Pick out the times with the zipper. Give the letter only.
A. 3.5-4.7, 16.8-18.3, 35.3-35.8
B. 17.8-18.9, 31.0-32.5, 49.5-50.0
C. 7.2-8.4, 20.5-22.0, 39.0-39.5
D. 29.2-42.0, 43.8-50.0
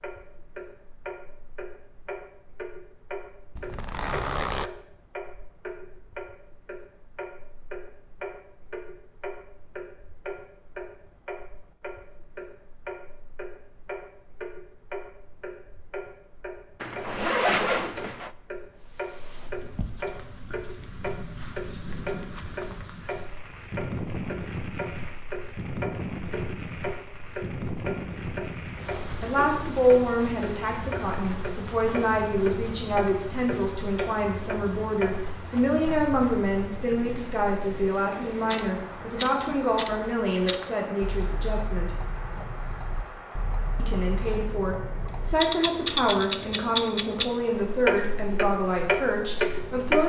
A.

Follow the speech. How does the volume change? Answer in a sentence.
The loudness of the speech stays about the same.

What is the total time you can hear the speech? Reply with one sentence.
You can hear the speech for 19 seconds altogether.